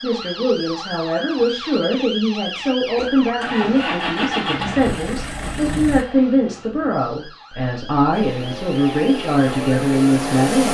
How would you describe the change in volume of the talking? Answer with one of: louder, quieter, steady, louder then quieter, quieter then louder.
steady.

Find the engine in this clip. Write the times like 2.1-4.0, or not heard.
3.0-6.0, 8.1-10.6.